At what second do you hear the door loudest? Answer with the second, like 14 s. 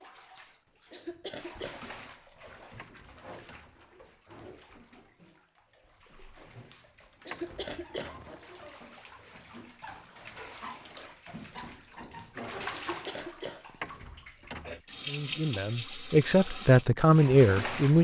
14 s.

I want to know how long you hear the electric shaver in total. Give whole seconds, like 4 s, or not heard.
not heard.